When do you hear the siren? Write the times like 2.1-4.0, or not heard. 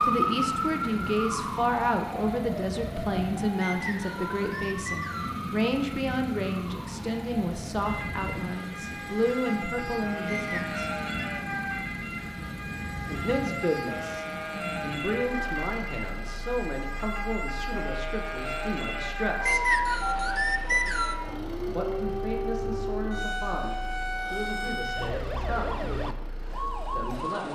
0.0-27.4.